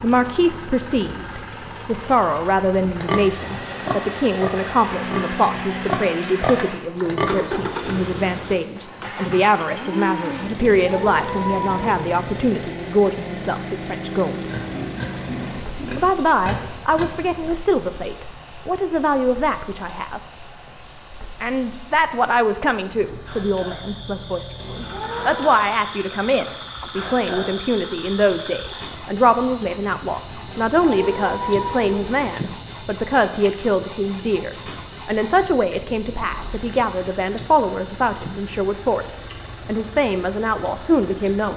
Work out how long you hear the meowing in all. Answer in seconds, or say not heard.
4 s.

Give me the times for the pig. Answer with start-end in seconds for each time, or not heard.
3.0-7.8, 14.5-17.5.